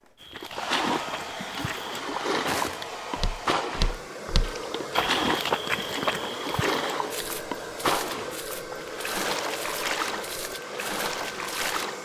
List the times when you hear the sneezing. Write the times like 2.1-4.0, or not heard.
not heard.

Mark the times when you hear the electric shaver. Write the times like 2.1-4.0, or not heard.
not heard.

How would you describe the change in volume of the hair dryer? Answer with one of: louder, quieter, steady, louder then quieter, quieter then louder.
steady.